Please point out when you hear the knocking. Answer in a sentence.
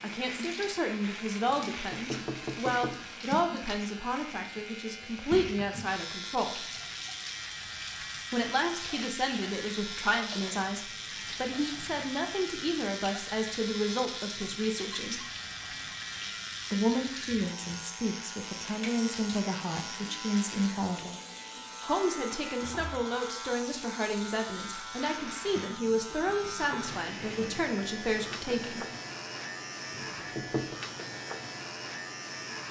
The knocking can be heard from 1.5 to 3.0 s and from 29.9 to 30.8 s.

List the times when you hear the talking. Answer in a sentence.
The talking can be heard from 0.0 to 6.7 s, from 8.3 to 15.2 s, from 16.7 to 21.2 s and from 21.8 to 28.9 s.